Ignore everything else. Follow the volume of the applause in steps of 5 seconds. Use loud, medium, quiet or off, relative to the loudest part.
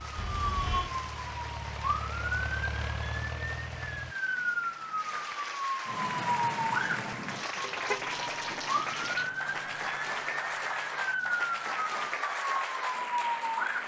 medium, loud, loud.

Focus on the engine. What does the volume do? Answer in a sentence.
The loudness of the engine goes up.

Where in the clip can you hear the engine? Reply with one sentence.
You can hear the engine from 0.0 to 4.2 s.